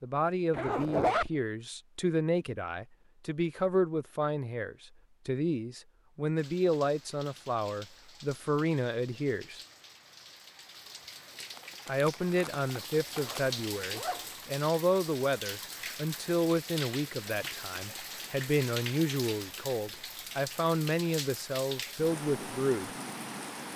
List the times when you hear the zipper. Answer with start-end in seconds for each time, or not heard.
0.5-1.3, 13.2-14.3.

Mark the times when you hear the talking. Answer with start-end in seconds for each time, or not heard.
0.0-9.6, 11.8-22.9.